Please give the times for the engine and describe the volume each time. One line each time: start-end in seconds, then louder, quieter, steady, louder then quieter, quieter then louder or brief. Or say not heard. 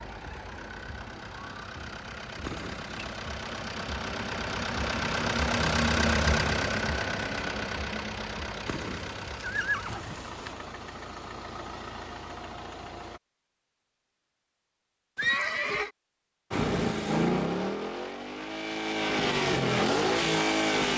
0.0-13.2 louder then quieter
16.5-20.9 quieter then louder.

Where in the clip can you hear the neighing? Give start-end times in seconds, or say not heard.
2.4-3.0, 8.7-10.6, 15.2-15.9.